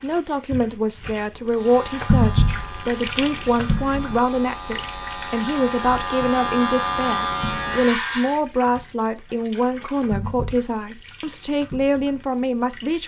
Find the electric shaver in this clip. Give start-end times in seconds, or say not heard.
1.5-8.4.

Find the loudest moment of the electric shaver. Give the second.
7 s.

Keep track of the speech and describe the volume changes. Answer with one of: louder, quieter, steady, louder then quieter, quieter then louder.
steady.